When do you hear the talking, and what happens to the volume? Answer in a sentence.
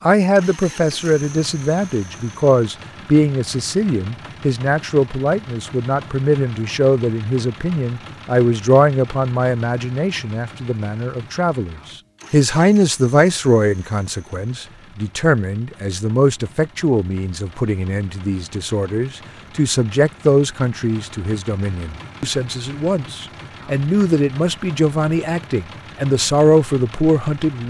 The talking can be heard from 0.0 to 27.6 s, at a steady volume.